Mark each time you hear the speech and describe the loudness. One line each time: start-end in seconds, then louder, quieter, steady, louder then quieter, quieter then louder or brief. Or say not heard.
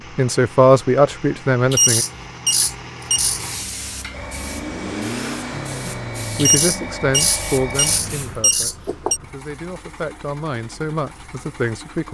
0.1-2.0 brief
5.8-12.0 quieter then louder.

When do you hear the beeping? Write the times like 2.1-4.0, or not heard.
1.7-3.4, 6.3-9.2.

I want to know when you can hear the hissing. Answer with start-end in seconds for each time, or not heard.
3.2-8.6.